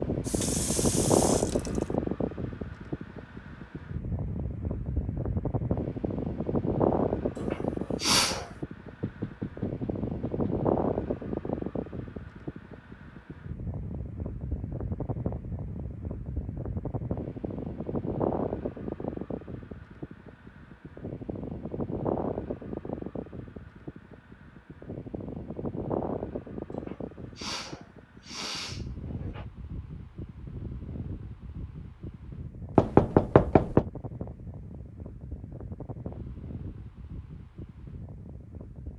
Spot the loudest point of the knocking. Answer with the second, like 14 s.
33 s.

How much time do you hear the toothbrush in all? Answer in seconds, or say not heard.
not heard.